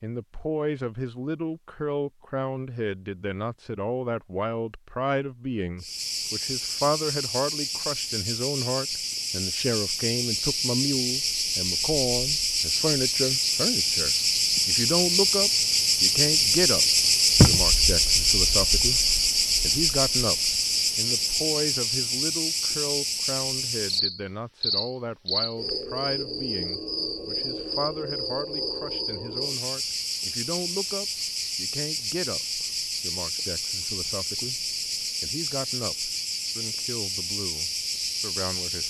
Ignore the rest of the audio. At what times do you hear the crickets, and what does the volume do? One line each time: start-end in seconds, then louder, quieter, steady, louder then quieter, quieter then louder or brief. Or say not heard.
5.8-38.8 louder then quieter.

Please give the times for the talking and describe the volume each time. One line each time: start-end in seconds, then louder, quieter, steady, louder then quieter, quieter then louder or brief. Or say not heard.
0.0-38.8 quieter.